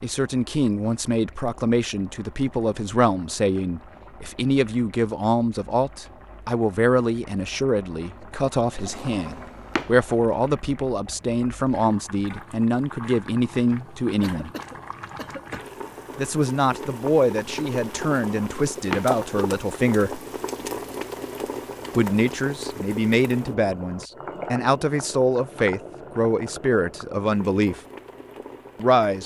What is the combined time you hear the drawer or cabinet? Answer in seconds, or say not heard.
2 s.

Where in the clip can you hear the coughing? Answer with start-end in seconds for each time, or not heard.
14.2-15.6.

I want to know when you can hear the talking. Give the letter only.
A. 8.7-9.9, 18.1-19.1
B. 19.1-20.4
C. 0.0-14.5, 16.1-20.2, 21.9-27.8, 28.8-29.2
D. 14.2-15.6
C.